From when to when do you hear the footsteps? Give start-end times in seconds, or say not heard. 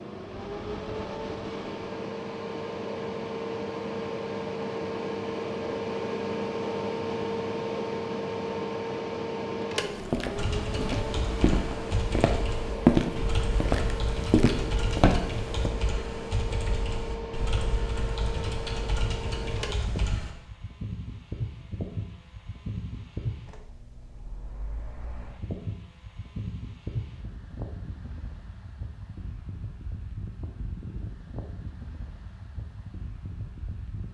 9.9-15.7.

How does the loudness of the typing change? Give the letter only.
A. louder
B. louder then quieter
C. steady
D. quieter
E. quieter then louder
C.